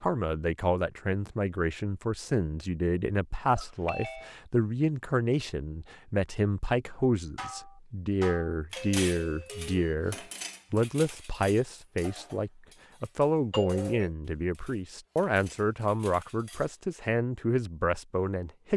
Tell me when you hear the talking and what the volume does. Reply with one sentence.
You can hear the talking from 0.0 to 18.7 s, at a steady volume.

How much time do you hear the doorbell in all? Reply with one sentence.
You can hear the doorbell for 2 seconds altogether.